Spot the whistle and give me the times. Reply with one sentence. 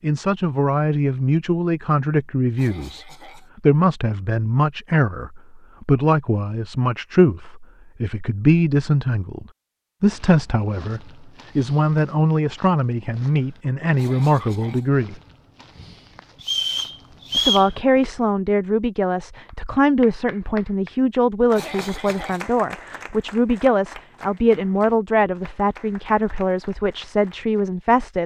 The whistle can be heard from 16.4 to 17.7 s.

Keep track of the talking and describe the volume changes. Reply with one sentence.
The loudness of the talking stays about the same.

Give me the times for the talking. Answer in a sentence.
The talking can be heard from 0.0 to 15.2 s and from 17.4 to 28.2 s.